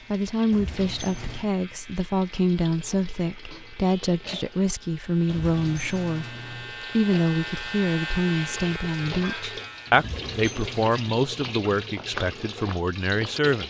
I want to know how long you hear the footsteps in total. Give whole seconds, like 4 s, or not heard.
2 s.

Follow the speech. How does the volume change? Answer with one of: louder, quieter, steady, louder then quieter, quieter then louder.
steady.